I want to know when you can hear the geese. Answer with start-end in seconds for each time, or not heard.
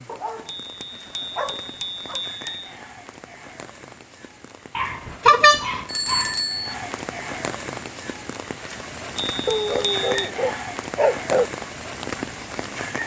not heard.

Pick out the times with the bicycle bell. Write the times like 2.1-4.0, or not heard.
0.5-2.7, 5.2-6.8, 9.2-10.3.